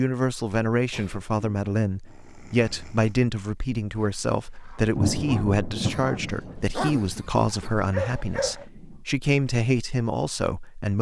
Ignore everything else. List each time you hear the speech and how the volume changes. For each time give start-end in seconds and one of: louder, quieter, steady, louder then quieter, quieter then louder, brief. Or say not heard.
0.0-10.9 steady.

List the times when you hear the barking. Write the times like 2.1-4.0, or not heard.
3.9-8.7.